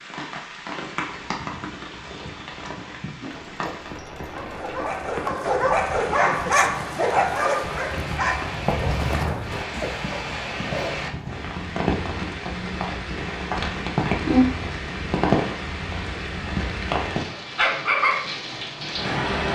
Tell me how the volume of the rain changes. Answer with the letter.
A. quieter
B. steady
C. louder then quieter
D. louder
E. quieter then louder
D.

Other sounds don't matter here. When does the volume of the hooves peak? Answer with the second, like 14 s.
9 s.